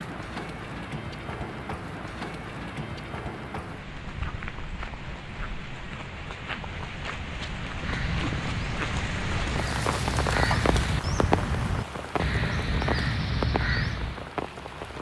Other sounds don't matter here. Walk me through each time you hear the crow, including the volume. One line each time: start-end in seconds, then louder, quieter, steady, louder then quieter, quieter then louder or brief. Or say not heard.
7.8-14.3 louder.